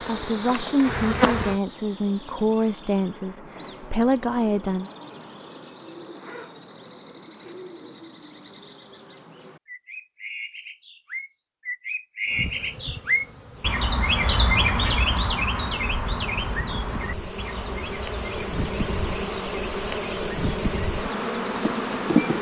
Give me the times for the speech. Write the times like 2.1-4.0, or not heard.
0.1-4.9.